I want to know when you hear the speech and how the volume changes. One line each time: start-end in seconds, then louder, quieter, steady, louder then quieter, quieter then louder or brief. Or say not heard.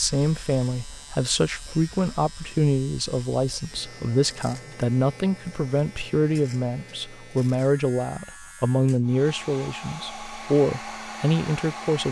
0.0-12.0 steady.